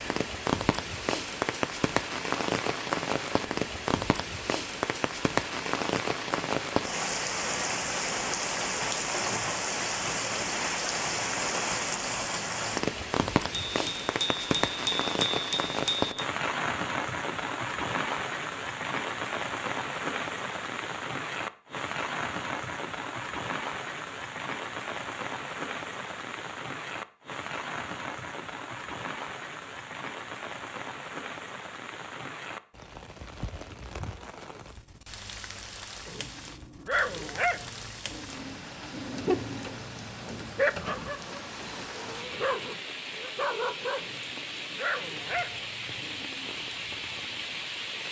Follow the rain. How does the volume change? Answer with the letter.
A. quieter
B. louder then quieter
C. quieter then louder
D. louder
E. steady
A.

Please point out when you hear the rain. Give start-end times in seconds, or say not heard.
0.0-48.0.